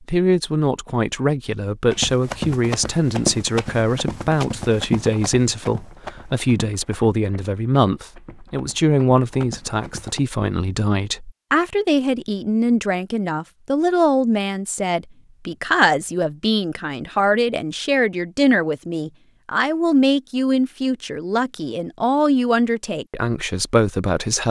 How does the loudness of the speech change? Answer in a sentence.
The loudness of the speech stays about the same.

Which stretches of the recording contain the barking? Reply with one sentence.
You can't hear the barking here.